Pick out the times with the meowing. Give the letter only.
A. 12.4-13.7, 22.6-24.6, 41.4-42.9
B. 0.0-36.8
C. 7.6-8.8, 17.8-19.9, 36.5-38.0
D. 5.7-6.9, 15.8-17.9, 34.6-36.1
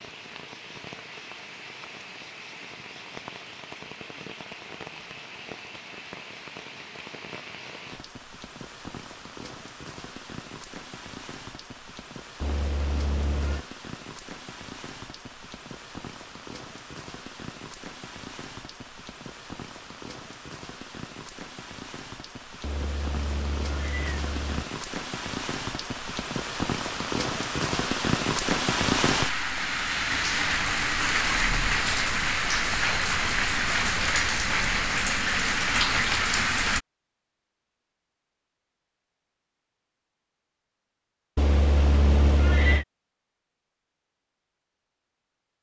A.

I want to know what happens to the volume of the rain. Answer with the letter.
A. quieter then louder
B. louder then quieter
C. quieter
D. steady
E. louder
E.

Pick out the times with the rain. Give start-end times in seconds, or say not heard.
0.0-36.8.